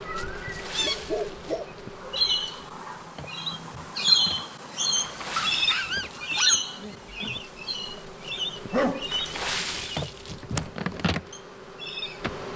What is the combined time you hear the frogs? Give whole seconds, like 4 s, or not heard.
not heard.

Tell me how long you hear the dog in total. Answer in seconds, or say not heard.
4 s.